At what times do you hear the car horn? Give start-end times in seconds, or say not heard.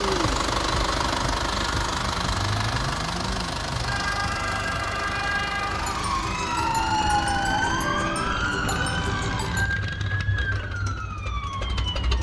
not heard.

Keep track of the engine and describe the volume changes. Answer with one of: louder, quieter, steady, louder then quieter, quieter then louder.
quieter.